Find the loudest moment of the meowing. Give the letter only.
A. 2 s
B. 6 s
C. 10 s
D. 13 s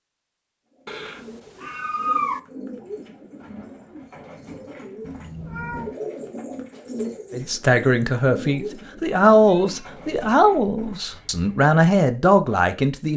A.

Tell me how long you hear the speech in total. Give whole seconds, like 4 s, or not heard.
6 s.